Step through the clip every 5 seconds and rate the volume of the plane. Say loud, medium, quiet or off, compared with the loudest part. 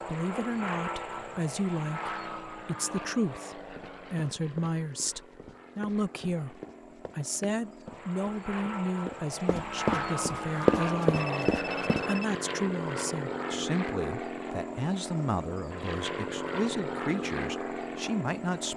medium, medium, loud, loud.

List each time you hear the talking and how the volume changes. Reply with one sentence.
The talking can be heard from 0.1 to 18.7 s, at a steady volume.